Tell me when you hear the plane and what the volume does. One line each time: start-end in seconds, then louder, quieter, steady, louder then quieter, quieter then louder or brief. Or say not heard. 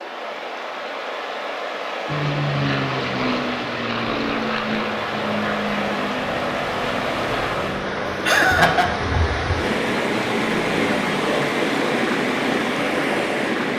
2.0-11.6 quieter.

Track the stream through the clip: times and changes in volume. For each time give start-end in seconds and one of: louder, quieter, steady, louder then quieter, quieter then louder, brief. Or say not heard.
0.0-13.7 louder.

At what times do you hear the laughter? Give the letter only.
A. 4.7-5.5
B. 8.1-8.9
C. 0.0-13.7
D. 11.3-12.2
B.